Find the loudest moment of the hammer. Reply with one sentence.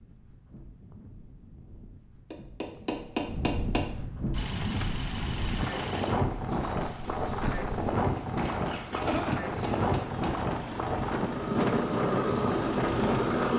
The volume of the hammer peaks at 3 seconds.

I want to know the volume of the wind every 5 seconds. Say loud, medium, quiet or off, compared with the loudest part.
medium, loud, loud.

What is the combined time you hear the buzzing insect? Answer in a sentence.
You can hear the buzzing insect for 2 seconds altogether.